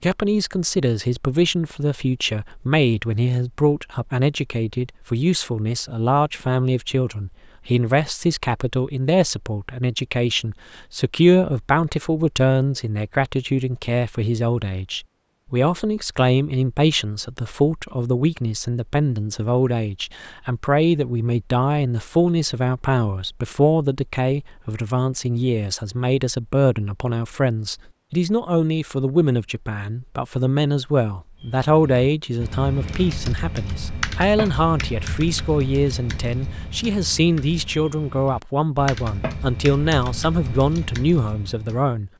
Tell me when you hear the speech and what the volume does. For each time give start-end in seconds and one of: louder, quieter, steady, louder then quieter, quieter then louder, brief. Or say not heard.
0.0-42.1 steady.